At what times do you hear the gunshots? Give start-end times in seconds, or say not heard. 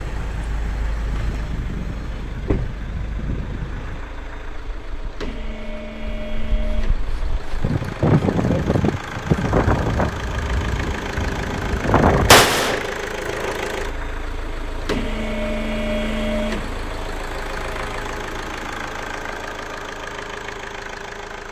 12.3-13.6.